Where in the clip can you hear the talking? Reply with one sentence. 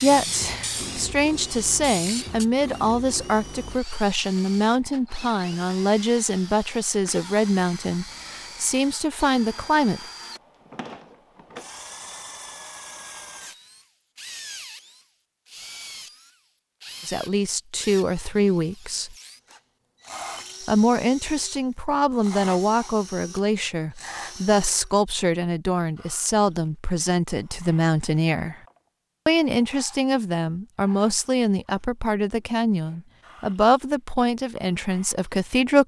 You can hear the talking from 0.0 to 10.0 s, from 17.1 to 19.1 s, from 20.6 to 28.6 s and from 29.2 to 35.8 s.